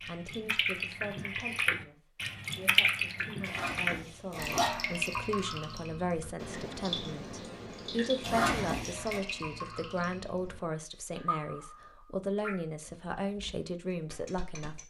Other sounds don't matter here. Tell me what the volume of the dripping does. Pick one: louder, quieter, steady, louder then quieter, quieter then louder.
quieter.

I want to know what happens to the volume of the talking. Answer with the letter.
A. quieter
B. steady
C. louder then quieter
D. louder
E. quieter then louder
D.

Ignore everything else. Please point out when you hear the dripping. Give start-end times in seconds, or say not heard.
0.0-14.8.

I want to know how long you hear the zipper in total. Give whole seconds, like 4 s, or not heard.
2 s.